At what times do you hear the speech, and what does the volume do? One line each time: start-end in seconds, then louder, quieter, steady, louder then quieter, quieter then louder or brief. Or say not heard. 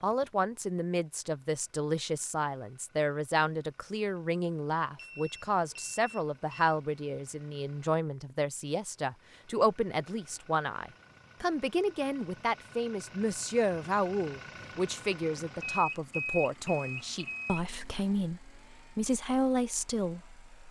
0.0-20.6 steady.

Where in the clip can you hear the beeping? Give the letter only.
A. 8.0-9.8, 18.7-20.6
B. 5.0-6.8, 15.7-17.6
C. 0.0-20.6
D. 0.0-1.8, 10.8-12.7
B.